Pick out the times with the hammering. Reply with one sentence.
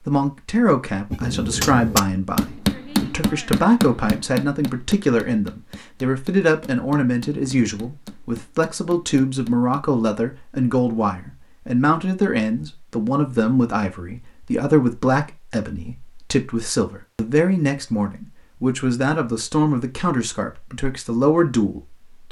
The hammering can be heard from 1.1 to 9.8 s.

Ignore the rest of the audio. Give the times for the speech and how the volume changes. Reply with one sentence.
The speech can be heard from 0.1 to 22.2 s, at a steady volume.